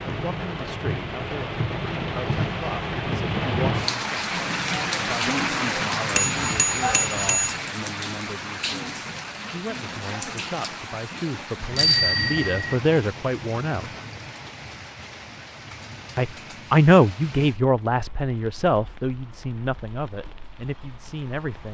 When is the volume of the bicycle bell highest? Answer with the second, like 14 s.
12 s.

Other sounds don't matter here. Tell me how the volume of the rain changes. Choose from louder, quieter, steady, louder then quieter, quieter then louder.
quieter.